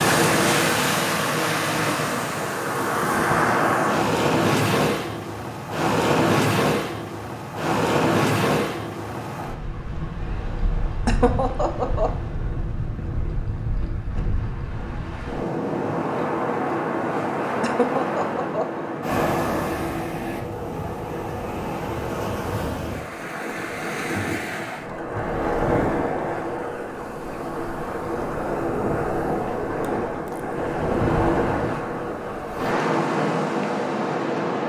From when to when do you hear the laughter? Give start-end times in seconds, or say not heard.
11.1-12.1, 17.6-18.9.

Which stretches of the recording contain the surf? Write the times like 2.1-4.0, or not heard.
0.0-34.6.